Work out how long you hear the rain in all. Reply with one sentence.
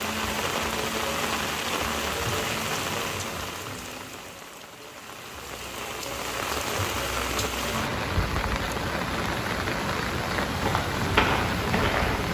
The rain can be heard for 12 seconds in total.